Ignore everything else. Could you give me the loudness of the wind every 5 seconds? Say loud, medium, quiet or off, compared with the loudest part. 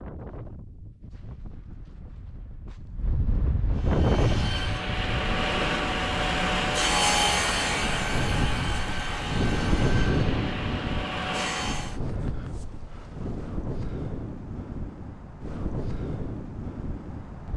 loud, loud, loud, medium.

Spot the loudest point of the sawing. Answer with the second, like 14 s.
7 s.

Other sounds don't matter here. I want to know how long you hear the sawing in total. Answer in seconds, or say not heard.
8 s.